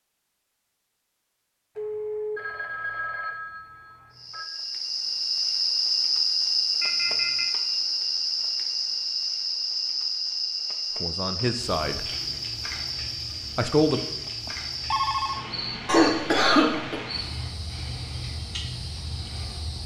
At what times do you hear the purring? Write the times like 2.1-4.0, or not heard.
not heard.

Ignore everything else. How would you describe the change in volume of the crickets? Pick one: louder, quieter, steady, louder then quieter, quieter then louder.
quieter.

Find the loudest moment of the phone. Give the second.
15 s.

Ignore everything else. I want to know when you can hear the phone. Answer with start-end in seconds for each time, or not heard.
1.8-4.5, 6.8-7.5, 14.2-15.5.